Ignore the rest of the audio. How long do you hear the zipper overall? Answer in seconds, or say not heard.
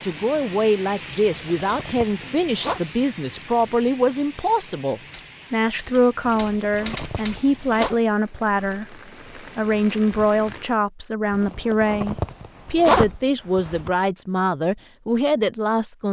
6 s.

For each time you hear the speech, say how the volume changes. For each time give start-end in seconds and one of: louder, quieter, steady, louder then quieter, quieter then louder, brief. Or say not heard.
0.0-16.0 steady.